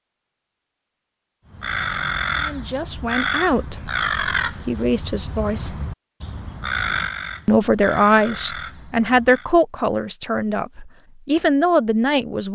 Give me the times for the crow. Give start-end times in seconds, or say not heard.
1.5-9.5.